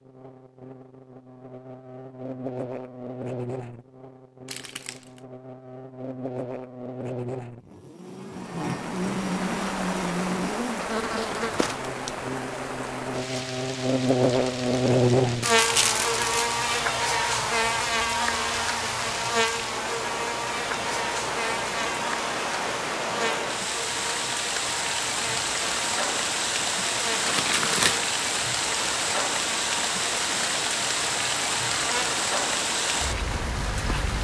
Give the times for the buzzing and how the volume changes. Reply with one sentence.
You can hear the buzzing from 0.0 to 34.0 s, getting louder then quieter.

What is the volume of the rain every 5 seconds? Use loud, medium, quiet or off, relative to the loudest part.
off, medium, medium, medium, loud, loud, loud.